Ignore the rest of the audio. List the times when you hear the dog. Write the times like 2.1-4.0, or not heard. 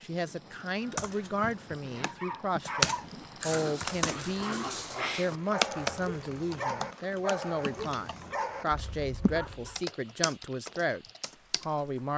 1.9-9.8.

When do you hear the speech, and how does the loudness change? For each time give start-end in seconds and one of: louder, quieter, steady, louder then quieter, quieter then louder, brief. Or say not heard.
0.0-12.1 steady.